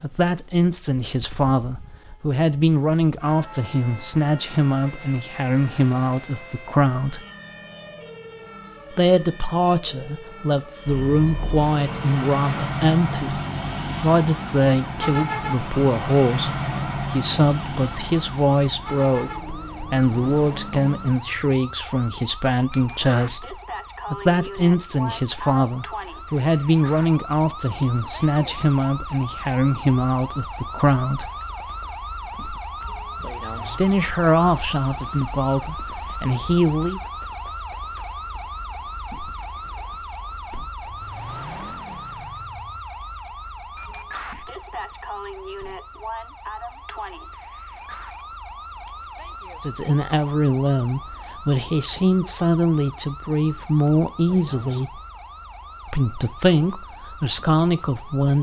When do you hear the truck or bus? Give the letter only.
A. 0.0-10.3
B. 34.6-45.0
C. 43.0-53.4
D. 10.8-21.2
D.